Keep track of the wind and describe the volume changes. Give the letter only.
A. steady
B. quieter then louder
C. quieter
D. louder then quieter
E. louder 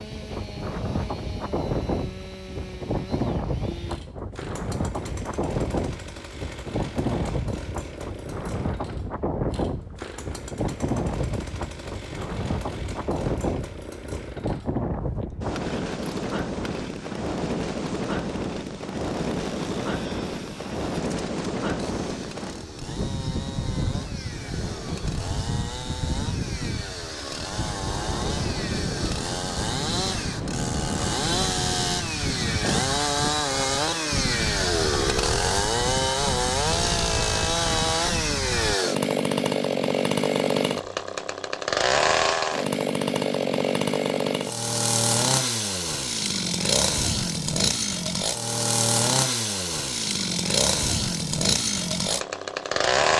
A.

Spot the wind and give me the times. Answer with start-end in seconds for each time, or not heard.
0.0-38.8.